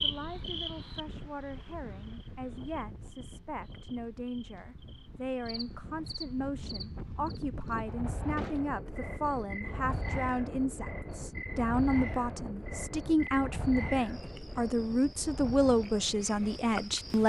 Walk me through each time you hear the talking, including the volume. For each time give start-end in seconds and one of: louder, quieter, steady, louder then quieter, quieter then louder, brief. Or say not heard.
0.0-17.2 louder.